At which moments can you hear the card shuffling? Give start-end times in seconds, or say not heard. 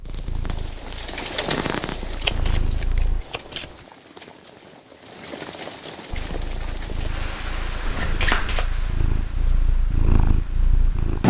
2.2-3.8, 7.8-8.7.